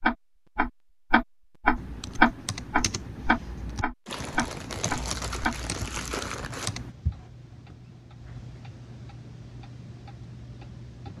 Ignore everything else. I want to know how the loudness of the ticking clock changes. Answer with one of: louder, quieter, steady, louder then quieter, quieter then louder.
quieter.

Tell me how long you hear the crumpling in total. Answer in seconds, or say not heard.
3 s.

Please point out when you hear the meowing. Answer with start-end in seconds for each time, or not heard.
not heard.